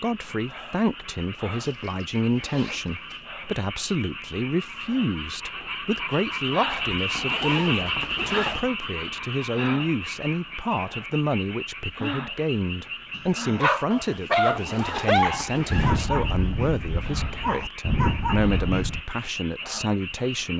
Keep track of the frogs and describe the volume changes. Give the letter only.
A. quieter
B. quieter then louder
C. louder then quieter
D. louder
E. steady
C.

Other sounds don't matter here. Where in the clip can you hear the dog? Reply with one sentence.
You can hear the dog from 13.2 to 19.0 s.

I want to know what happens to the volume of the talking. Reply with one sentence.
The volume of the talking stays about the same.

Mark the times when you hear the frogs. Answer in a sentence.
The frogs can be heard from 0.0 to 20.5 s.